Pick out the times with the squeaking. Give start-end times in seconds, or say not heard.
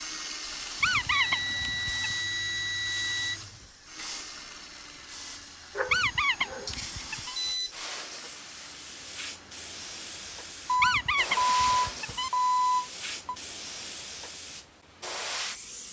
0.8-2.1, 5.8-7.3, 10.8-12.3.